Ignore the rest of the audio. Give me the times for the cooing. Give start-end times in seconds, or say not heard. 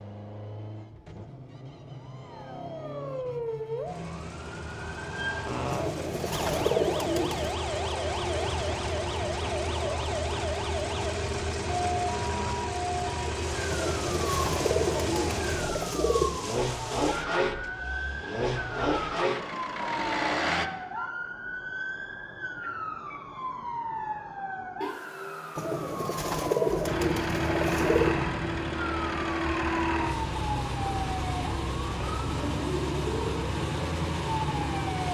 5.7-7.5, 13.7-16.4, 25.6-28.2.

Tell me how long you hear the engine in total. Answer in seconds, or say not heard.
29 s.